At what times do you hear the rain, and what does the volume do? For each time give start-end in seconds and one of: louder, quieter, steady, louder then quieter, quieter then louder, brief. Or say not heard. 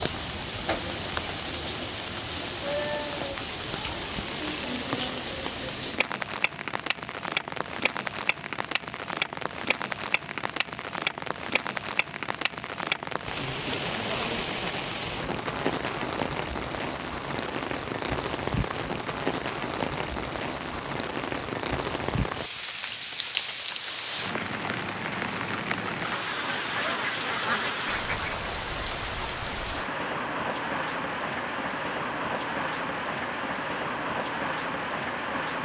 0.0-35.6 steady.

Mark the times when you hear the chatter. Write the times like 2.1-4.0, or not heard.
not heard.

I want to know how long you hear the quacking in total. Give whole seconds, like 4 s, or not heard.
2 s.